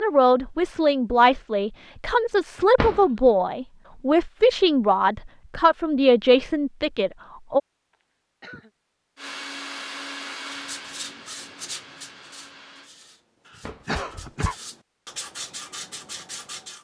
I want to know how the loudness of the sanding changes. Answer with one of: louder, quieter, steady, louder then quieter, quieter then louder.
quieter then louder.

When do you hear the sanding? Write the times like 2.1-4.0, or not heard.
10.4-16.7.